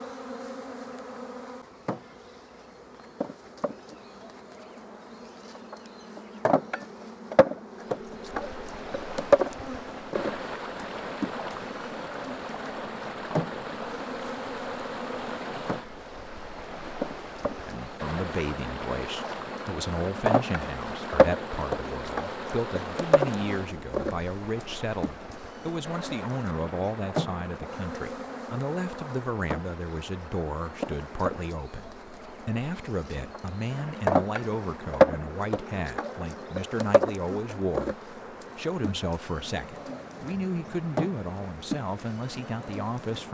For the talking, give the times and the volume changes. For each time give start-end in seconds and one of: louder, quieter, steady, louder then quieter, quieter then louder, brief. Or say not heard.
17.6-43.2 steady.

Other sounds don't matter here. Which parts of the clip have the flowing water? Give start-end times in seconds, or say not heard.
7.8-43.2.